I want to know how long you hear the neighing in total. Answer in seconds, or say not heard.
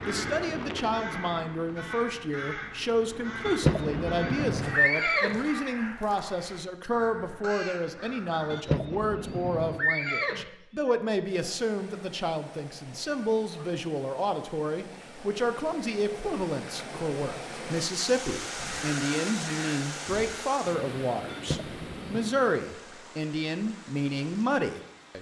5 s.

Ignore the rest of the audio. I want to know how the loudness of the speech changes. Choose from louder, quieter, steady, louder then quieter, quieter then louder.
steady.